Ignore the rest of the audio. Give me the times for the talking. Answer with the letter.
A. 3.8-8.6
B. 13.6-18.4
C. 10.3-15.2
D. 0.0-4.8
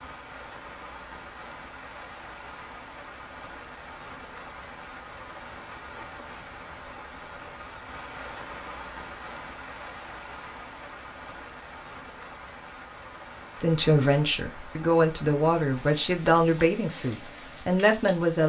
B.